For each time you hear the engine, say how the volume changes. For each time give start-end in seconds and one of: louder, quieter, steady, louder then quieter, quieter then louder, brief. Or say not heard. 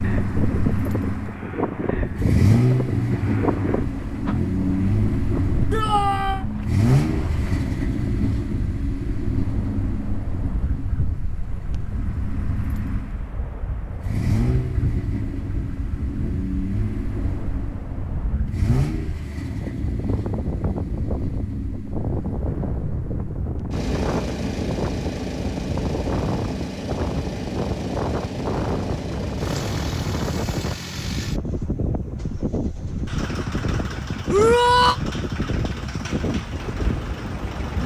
0.0-37.8 quieter.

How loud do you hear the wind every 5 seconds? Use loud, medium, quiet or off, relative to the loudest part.
loud, medium, medium, medium, loud, loud, loud, loud.